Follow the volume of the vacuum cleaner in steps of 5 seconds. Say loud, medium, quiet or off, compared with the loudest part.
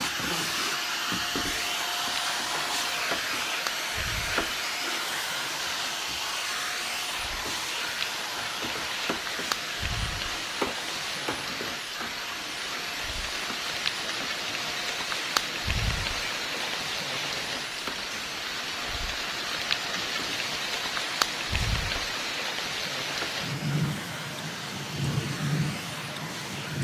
loud, loud, medium, medium, medium, medium.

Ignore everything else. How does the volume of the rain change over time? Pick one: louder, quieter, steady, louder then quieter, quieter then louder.
louder.